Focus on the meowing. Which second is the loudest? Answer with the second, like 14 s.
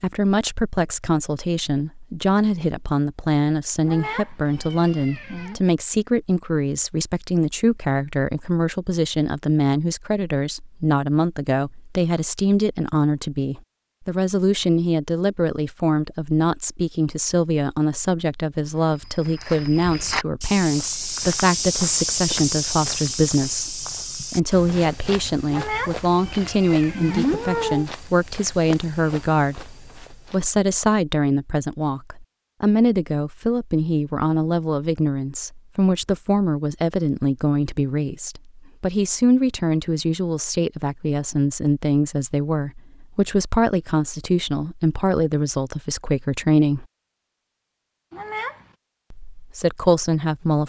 27 s.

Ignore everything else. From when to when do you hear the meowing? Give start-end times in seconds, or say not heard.
3.8-5.6, 25.4-27.9, 48.1-48.6.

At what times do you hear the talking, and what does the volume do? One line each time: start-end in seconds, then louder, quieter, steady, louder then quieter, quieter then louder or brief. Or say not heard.
0.0-46.9 steady
49.3-50.6 brief.